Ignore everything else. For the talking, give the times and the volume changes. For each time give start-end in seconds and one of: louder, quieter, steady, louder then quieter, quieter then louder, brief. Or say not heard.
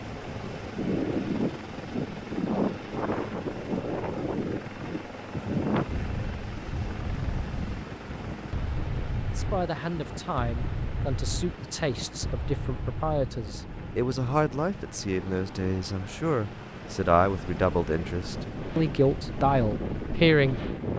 9.3-20.6 louder.